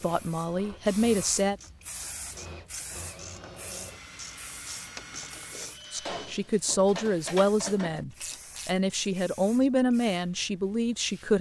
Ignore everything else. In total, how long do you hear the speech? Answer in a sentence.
The speech can be heard for 7 seconds in total.